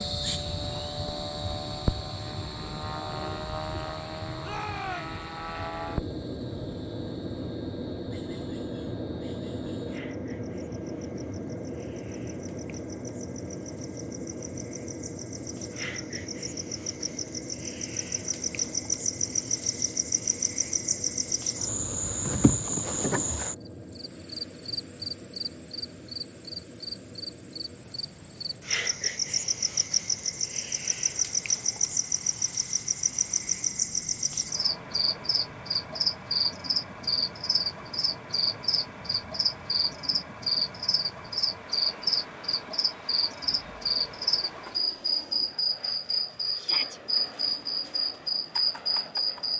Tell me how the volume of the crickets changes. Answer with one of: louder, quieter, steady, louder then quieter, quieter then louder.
louder.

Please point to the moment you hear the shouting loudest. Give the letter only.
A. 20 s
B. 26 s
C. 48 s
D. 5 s
D.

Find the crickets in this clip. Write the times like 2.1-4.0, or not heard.
0.0-49.5.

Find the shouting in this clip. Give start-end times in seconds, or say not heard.
4.4-5.2, 46.5-47.0.